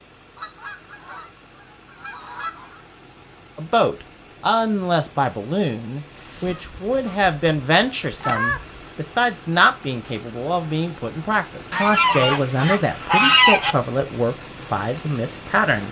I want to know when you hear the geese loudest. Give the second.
13 s.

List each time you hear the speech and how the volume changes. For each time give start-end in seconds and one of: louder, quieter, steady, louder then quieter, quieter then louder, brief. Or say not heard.
3.5-15.8 steady.